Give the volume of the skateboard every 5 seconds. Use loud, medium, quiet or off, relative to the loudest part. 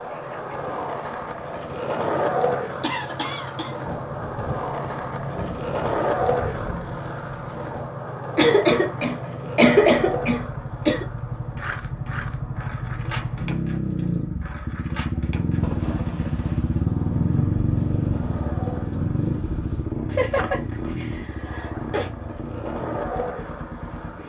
loud, loud, medium, quiet, medium.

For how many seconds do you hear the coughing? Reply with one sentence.
The coughing can be heard for 6 seconds in total.